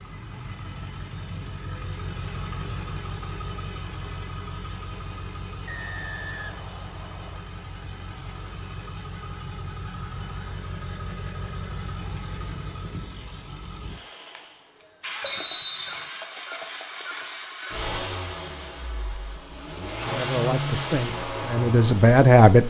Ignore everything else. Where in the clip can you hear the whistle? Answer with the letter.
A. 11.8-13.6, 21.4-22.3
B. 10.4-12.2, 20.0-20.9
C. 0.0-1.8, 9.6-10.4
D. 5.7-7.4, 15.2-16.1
D.